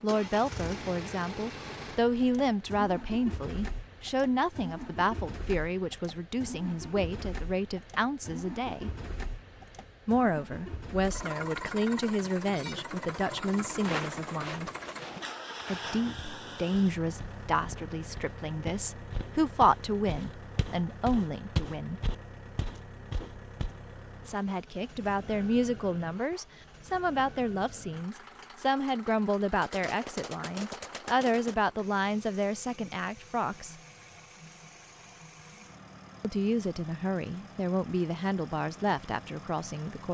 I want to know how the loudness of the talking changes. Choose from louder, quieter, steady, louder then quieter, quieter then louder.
steady.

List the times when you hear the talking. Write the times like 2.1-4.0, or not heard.
0.0-8.9, 10.1-14.7, 15.7-22.0, 24.2-33.8, 36.2-40.0.